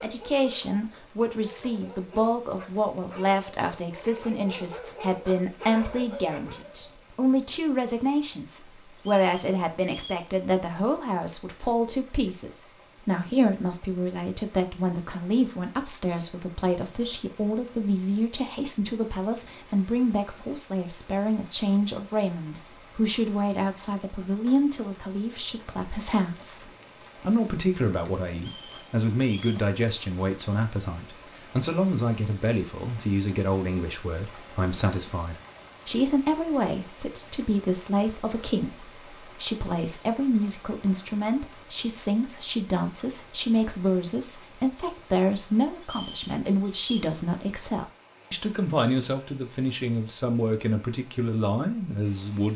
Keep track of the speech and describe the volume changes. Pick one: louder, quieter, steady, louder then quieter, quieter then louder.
steady.